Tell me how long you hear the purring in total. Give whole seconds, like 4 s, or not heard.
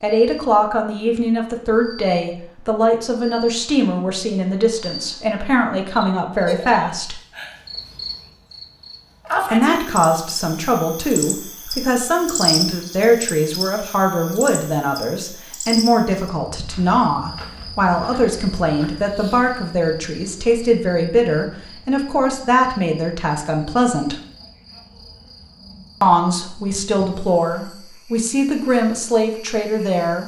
not heard.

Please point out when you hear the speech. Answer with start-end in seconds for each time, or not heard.
0.0-7.2, 9.5-24.1, 26.0-30.2.